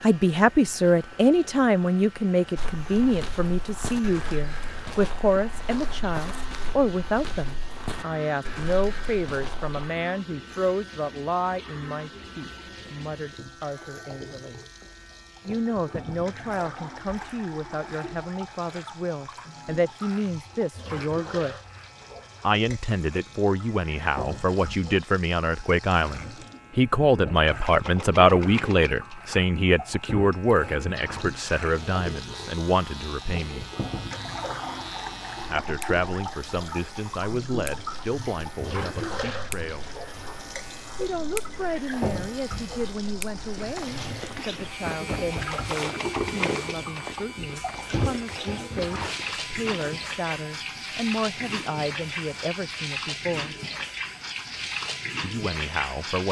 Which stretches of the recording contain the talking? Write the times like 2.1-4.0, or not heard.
0.0-14.6, 15.4-21.6, 22.4-33.6, 35.5-39.9, 41.0-53.5, 55.2-56.2.